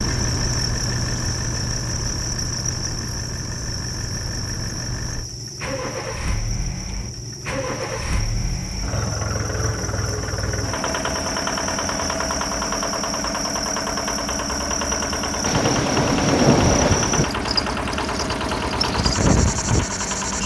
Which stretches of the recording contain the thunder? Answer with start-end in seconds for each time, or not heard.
15.4-17.2.